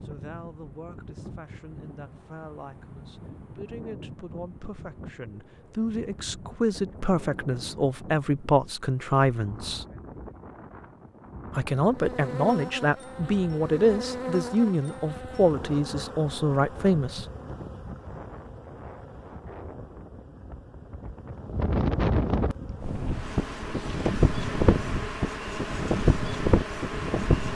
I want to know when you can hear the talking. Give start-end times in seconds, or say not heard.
0.1-9.8, 11.5-17.2.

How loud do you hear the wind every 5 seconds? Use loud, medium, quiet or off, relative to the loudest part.
quiet, quiet, quiet, quiet, loud, loud.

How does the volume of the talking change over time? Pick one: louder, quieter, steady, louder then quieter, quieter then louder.
louder.